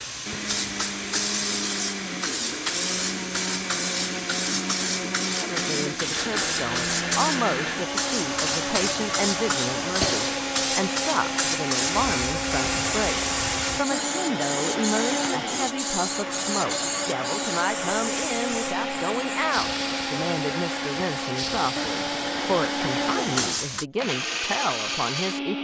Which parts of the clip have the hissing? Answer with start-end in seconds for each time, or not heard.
0.0-23.9.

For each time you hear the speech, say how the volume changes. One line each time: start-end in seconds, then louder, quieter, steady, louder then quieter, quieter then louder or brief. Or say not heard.
5.4-25.5 steady.